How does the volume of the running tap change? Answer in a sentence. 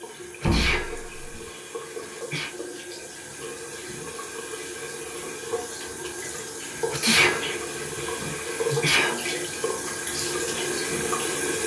The loudness of the running tap goes up.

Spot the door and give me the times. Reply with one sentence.
The door can be heard from 0.4 to 1.4 s.